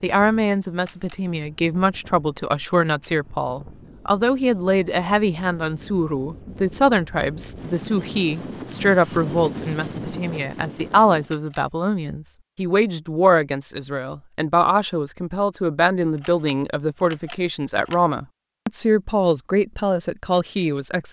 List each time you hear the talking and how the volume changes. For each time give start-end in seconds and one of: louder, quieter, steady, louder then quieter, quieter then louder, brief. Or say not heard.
0.0-21.0 steady.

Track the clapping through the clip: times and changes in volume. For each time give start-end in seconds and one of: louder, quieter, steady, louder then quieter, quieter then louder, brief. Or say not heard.
not heard.